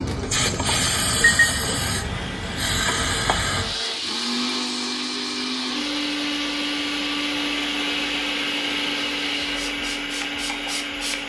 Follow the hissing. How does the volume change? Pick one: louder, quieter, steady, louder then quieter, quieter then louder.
quieter.